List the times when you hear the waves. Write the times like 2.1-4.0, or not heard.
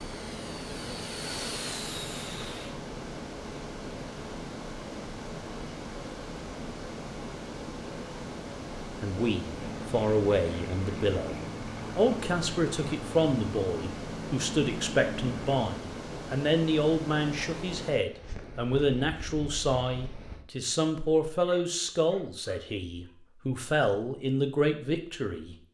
0.0-20.4.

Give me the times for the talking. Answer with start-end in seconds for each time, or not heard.
8.9-25.6.